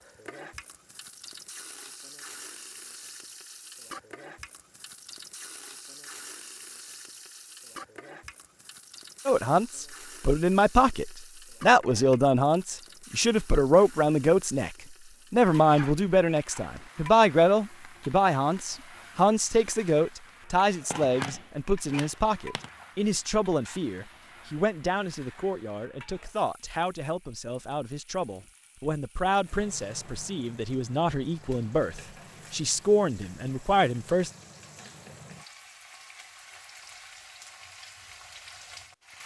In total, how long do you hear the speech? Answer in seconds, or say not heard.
25 s.